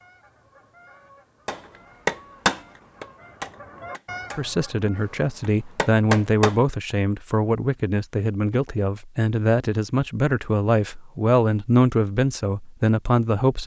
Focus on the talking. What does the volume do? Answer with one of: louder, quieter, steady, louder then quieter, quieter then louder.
steady.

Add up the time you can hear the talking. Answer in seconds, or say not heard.
9 s.